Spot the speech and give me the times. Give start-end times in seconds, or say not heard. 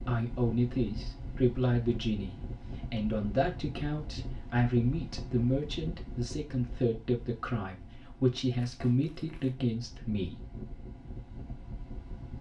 0.1-10.4.